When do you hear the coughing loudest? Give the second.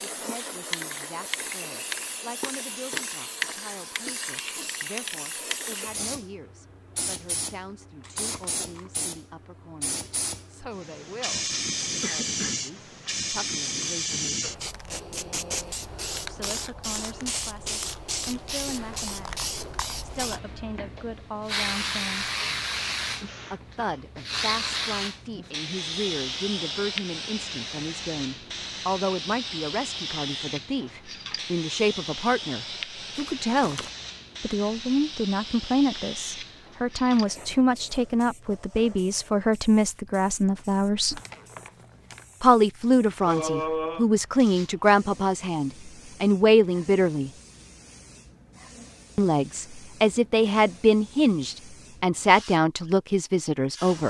44 s.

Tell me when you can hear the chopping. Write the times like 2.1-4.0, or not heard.
not heard.